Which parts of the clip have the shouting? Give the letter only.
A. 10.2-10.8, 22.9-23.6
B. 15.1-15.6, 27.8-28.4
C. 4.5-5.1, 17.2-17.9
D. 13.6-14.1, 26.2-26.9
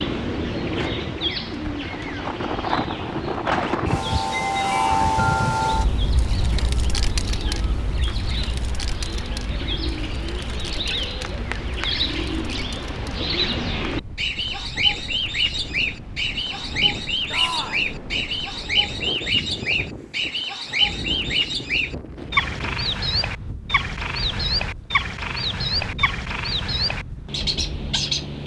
C.